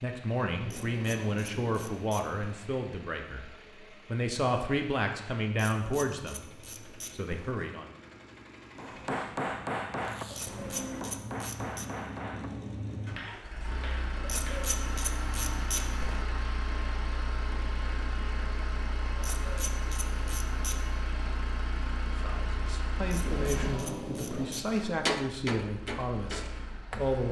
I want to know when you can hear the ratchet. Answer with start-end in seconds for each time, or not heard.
0.7-2.5, 5.5-7.5, 10.3-11.9, 14.2-16.2, 19.1-20.8, 23.1-24.8.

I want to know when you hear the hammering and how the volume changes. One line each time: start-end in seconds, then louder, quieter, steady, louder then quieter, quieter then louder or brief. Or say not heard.
8.8-14.7 quieter
24.7-27.2 brief.